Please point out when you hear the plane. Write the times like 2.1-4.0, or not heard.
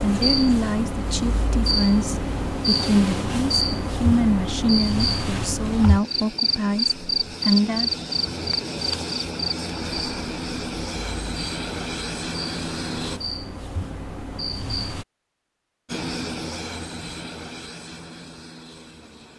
5.8-13.2, 15.8-19.3.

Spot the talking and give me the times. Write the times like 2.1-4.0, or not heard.
0.0-7.9.